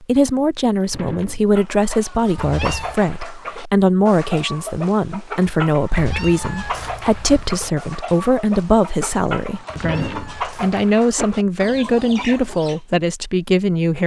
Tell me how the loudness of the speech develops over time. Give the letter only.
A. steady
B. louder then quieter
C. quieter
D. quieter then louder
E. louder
A.